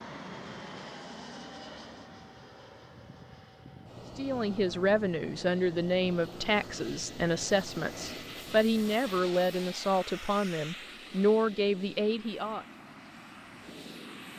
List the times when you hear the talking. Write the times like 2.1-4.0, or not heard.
4.2-12.7.